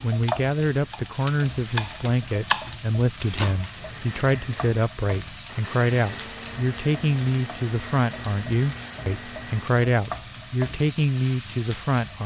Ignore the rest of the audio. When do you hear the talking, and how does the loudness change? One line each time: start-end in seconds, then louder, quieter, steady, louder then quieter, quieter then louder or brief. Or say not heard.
0.0-12.2 steady.